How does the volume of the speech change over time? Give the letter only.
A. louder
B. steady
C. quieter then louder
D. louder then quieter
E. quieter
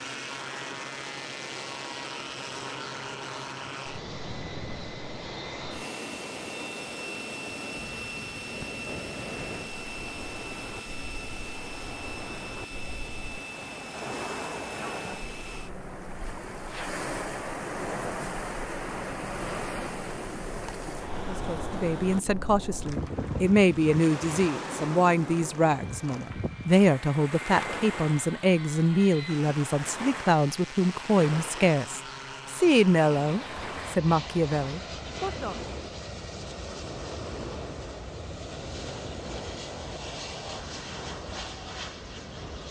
B.